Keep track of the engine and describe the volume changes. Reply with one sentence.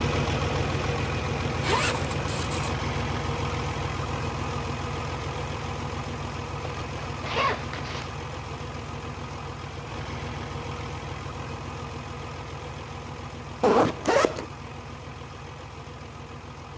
The volume of the engine goes down.